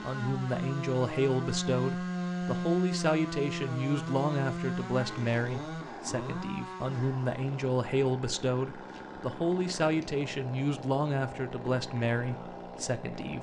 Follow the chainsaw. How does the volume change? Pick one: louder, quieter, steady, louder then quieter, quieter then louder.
quieter.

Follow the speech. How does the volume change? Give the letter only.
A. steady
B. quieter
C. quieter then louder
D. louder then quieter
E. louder
A.